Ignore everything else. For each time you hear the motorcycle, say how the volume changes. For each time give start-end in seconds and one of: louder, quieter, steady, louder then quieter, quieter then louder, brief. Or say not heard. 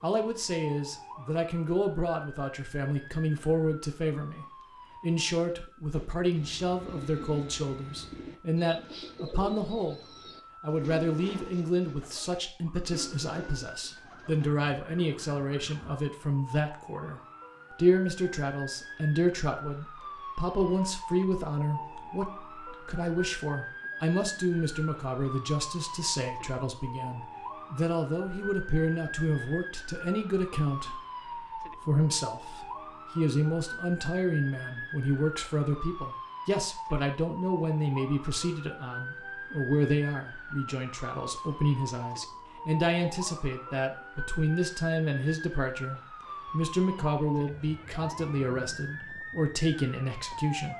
not heard.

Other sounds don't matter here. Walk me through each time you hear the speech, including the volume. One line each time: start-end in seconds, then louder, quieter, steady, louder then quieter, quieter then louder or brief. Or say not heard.
0.0-50.7 steady.